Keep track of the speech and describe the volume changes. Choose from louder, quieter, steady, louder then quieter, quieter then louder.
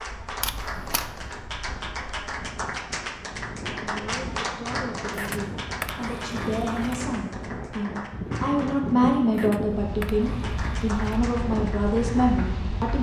louder.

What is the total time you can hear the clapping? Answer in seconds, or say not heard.
12 s.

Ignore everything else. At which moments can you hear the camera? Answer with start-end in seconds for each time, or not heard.
0.4-1.1, 5.1-7.0, 9.3-11.2.